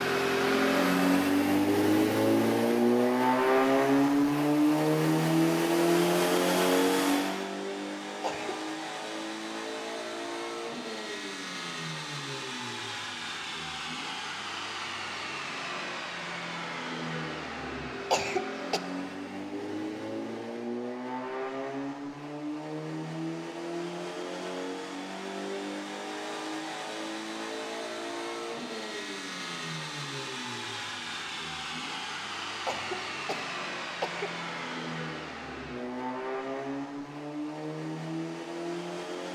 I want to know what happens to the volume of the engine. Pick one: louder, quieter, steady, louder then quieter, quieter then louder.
quieter.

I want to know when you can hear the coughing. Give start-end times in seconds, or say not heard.
8.2-8.6, 18.1-18.8, 32.6-34.4.